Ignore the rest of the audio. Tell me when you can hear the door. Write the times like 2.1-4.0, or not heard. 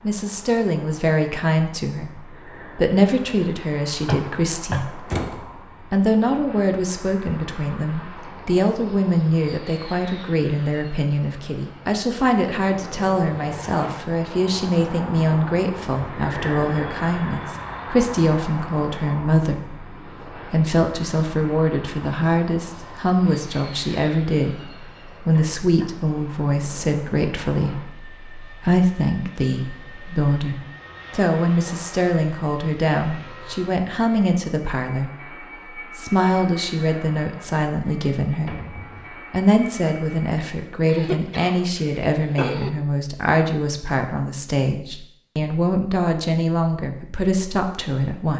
5.0-5.5, 38.5-39.2.